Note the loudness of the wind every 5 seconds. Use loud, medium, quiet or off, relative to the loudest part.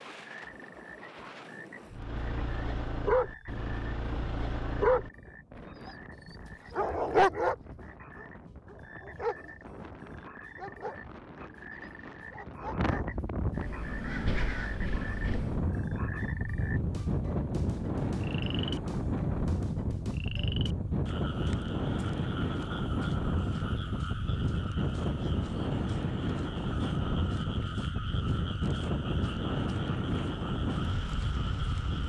quiet, quiet, medium, loud, loud, loud, loud.